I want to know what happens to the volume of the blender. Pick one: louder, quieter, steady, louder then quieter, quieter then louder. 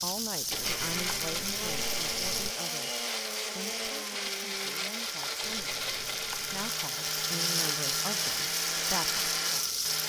steady.